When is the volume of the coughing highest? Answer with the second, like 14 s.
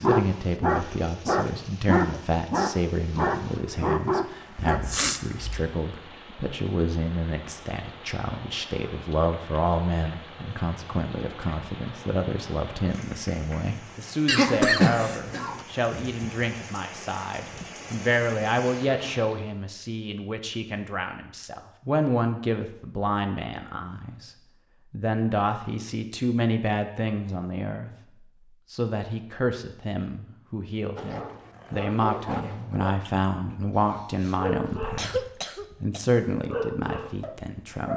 15 s.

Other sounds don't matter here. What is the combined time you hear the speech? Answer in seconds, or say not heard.
38 s.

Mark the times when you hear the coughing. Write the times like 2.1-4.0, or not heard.
4.6-5.6, 14.2-15.7, 33.7-36.0.